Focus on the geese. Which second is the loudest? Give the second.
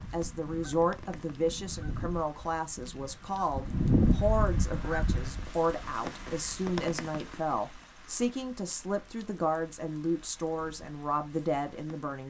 4 s.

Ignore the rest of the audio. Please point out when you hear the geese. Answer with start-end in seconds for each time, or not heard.
0.0-5.5.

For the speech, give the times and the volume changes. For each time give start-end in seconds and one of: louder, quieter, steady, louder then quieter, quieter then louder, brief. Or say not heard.
0.1-12.2 steady.